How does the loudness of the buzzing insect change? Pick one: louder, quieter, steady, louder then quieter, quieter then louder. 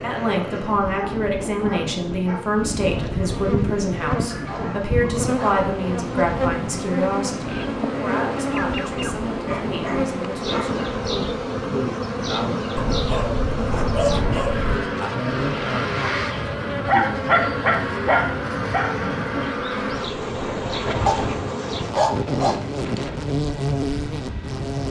steady.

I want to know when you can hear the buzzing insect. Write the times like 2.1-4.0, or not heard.
2.5-24.8.